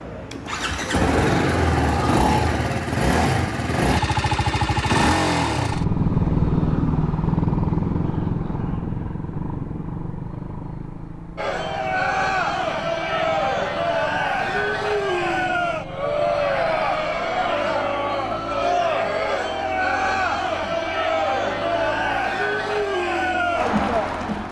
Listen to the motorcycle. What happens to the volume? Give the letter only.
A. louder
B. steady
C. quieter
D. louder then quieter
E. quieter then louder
C.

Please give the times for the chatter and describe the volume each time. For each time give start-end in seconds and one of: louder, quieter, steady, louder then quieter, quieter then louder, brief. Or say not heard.
11.3-24.4 steady.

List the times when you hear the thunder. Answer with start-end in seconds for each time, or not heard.
not heard.